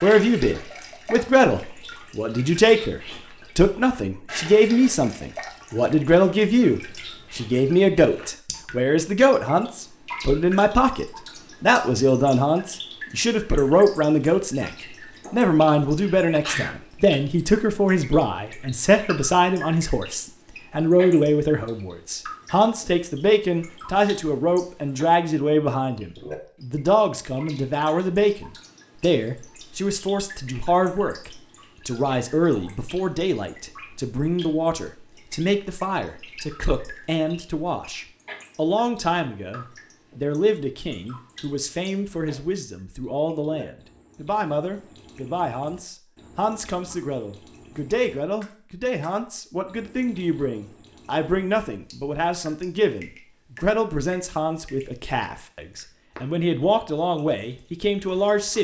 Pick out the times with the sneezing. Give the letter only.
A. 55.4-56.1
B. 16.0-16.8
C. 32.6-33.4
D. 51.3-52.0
B.